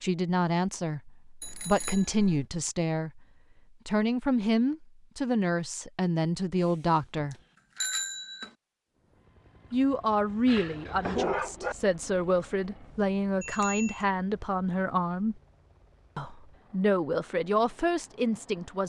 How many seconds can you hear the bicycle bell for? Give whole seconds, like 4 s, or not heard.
4 s.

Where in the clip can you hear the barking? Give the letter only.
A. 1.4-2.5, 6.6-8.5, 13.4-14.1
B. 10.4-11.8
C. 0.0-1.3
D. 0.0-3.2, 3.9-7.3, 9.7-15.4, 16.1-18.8
B.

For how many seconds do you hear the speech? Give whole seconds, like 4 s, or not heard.
15 s.